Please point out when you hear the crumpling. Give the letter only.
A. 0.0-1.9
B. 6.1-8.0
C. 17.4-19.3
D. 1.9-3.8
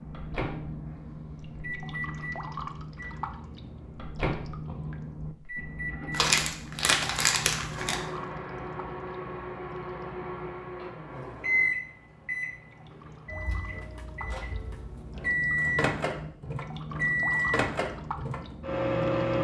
B.